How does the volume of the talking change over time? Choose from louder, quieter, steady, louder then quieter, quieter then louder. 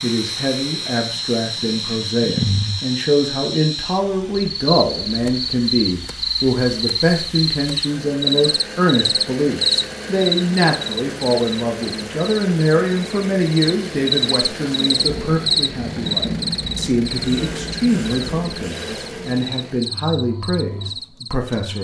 steady.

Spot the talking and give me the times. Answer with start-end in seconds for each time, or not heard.
0.0-21.8.